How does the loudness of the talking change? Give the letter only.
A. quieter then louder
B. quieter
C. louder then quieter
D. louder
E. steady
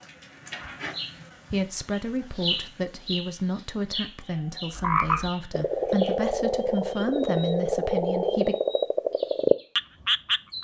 E.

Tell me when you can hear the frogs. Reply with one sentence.
You can hear the frogs from 4.8 to 10.5 s.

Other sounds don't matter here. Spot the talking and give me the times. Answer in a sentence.
The talking can be heard from 1.5 to 8.6 s.